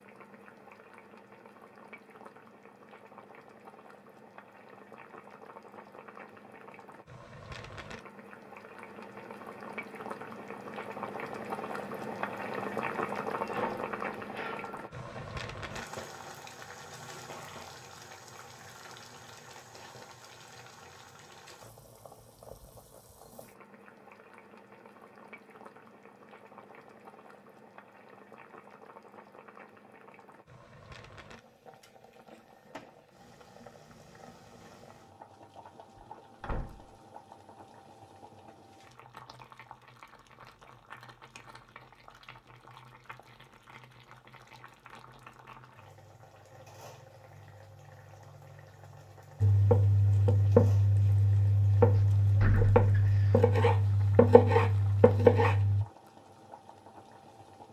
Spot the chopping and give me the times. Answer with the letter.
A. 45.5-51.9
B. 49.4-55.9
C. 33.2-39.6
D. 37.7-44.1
B.